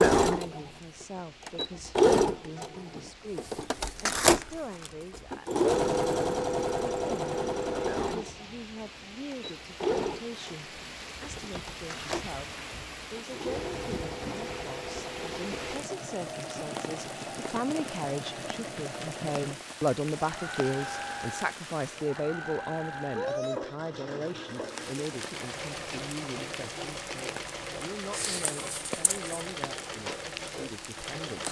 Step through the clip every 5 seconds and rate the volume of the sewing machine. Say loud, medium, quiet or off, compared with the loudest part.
loud, loud, quiet, quiet, quiet, quiet, quiet.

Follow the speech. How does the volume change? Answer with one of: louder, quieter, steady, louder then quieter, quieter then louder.
louder then quieter.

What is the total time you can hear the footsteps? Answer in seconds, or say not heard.
not heard.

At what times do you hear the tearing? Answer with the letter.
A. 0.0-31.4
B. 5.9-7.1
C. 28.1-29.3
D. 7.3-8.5
C.